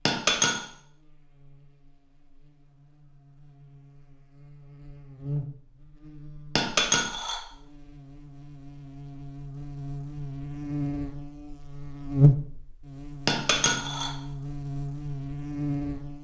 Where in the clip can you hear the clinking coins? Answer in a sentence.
You can hear the clinking coins from 0.1 to 0.6 s, from 6.5 to 7.4 s and from 13.2 to 14.1 s.